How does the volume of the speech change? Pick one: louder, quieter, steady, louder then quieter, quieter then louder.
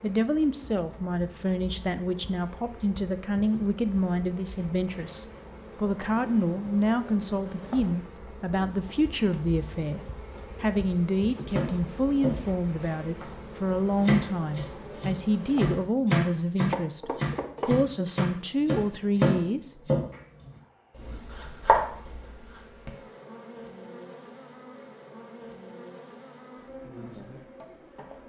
steady.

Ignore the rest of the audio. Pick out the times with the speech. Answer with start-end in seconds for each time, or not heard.
0.0-19.7.